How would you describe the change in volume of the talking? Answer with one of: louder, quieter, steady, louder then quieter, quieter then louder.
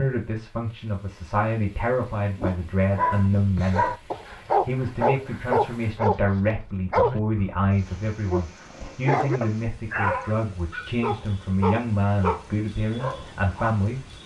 steady.